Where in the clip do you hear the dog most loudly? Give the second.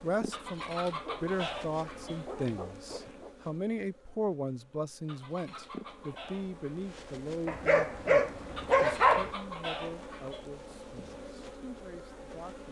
9 s.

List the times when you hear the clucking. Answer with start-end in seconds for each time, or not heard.
0.3-2.2, 5.0-6.9, 8.6-10.4.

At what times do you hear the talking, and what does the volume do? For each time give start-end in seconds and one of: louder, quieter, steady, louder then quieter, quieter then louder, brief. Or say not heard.
0.0-12.6 quieter.